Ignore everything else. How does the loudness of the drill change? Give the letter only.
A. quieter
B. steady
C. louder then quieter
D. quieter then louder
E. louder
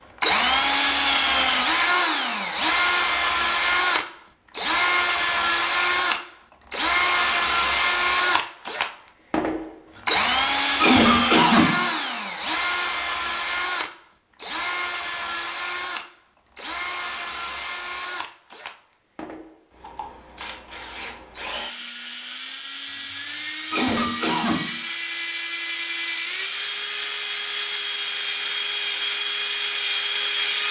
D.